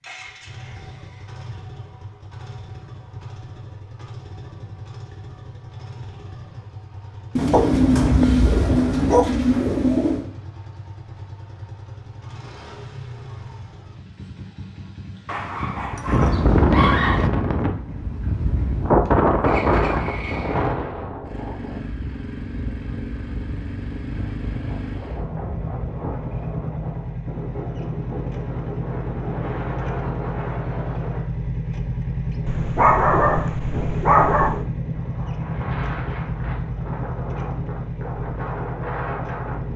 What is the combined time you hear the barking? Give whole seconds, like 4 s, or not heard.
6 s.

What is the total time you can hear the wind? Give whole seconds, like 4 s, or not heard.
24 s.